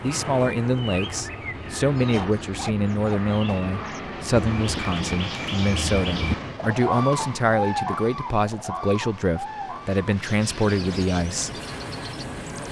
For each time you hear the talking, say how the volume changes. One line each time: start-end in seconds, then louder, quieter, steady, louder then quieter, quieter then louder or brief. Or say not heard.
0.0-11.5 steady.